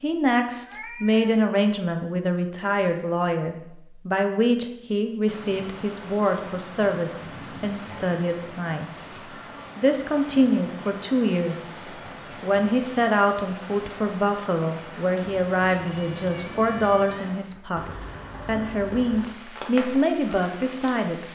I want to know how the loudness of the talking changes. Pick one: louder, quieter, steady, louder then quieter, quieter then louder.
steady.